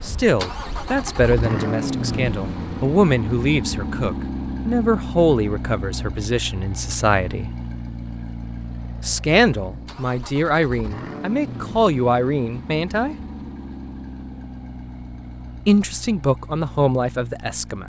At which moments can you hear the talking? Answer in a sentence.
The talking can be heard from 0.0 to 7.5 s, from 9.0 to 13.2 s and from 15.7 to 17.8 s.